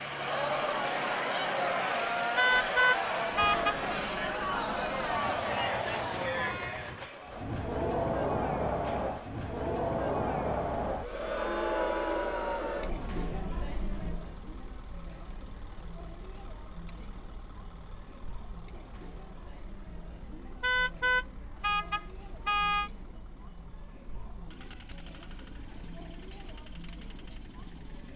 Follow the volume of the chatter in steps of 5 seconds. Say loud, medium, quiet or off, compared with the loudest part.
loud, loud, loud, quiet, quiet, quiet.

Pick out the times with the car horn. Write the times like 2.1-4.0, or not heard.
2.4-3.8, 20.6-22.9.